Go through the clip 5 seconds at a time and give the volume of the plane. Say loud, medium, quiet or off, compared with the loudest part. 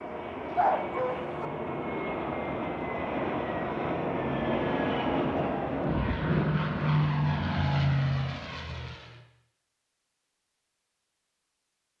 loud, loud, off.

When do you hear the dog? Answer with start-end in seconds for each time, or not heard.
0.6-1.5.